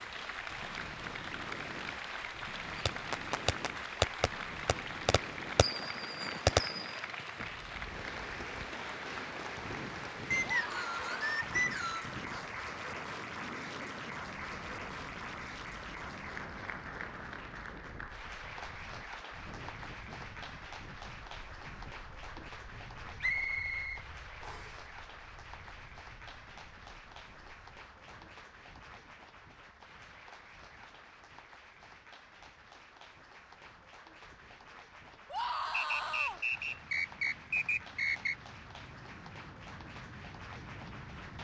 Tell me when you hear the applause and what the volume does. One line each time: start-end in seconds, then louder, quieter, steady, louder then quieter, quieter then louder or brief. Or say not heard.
0.0-41.3 quieter.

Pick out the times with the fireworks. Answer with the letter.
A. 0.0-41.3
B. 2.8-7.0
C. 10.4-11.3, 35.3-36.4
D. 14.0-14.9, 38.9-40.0
B.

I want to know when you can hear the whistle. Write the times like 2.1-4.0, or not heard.
10.3-12.1, 23.2-24.8, 35.7-38.4.